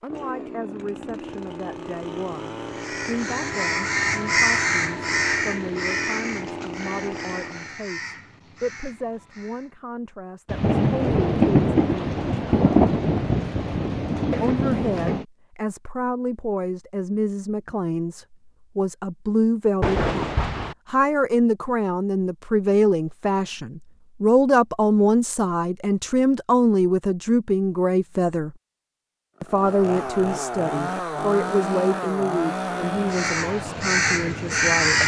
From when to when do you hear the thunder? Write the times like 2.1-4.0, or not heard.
10.5-15.2, 19.8-20.8.